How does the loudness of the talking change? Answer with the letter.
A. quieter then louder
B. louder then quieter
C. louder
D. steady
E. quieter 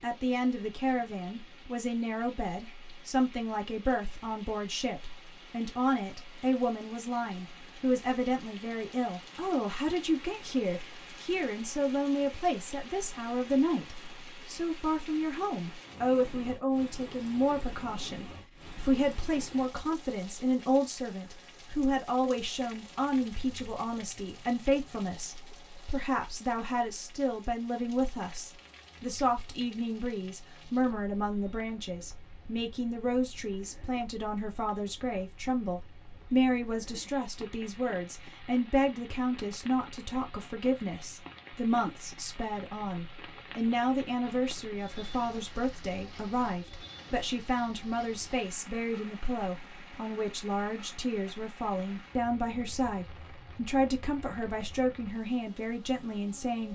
D.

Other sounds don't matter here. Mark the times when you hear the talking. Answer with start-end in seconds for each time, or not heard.
0.0-56.7.